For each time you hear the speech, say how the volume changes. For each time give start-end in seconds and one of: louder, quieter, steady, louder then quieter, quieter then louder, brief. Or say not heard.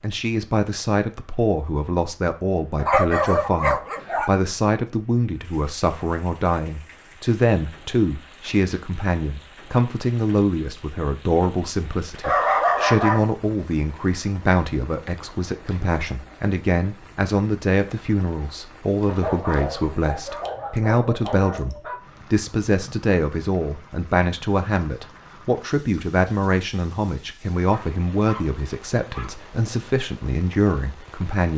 0.0-31.5 steady.